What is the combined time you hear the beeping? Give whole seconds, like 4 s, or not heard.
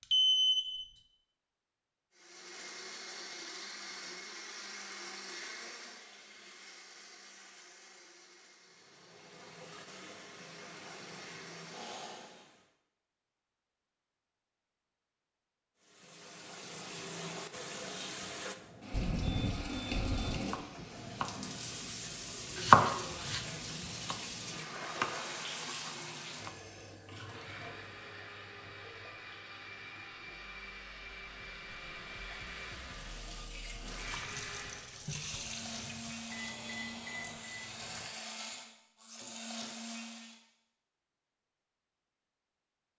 4 s.